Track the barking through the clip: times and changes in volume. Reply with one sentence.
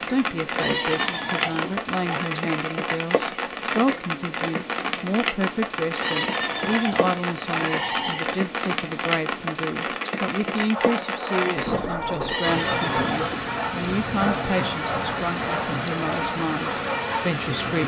The barking can be heard from 10.7 to 17.3 s, at a steady volume.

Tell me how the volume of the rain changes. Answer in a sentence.
The loudness of the rain stays about the same.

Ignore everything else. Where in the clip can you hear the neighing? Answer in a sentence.
The neighing can be heard from 0.6 to 2.3 s, from 6.0 to 8.3 s and from 12.2 to 13.3 s.